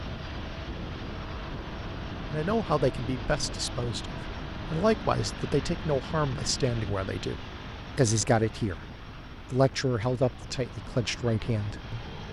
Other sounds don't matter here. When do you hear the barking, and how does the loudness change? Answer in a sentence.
The barking can't be heard in this clip.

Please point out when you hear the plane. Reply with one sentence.
You can hear the plane from 0.0 to 12.2 s.